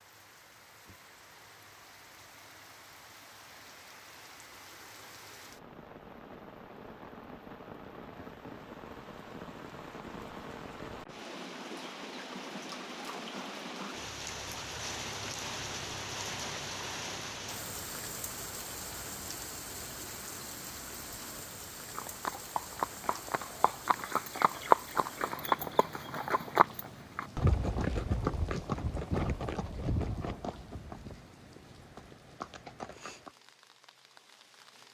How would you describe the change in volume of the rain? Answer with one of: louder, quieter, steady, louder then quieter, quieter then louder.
louder then quieter.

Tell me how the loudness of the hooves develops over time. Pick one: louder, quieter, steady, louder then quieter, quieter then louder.
louder then quieter.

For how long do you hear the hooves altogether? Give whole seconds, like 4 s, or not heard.
11 s.